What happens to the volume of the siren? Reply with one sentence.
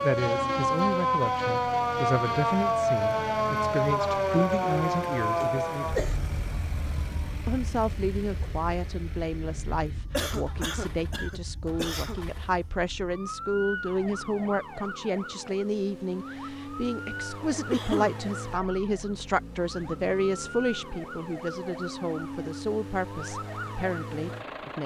The volume of the siren goes down.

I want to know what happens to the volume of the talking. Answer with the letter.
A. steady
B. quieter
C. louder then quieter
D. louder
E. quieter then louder
A.